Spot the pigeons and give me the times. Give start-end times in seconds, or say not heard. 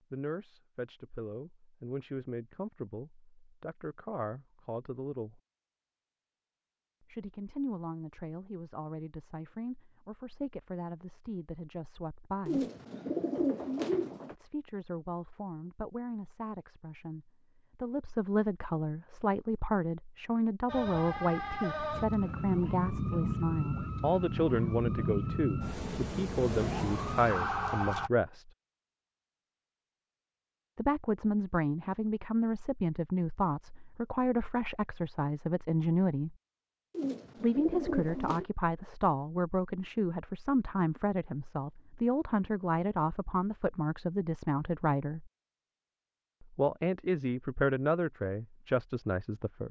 12.4-14.3, 36.9-38.5.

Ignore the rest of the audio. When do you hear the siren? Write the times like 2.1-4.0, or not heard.
20.6-28.1.